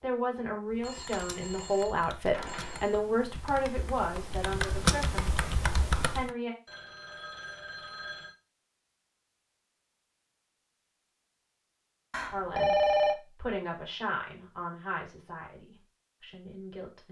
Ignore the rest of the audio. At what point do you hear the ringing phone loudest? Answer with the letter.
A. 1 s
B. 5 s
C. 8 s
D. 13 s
D.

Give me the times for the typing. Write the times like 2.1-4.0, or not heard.
0.7-6.3.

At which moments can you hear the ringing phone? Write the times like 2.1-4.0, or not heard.
0.8-3.0, 6.7-8.3, 12.1-13.2.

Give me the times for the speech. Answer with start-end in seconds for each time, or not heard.
0.0-6.5, 12.3-17.0.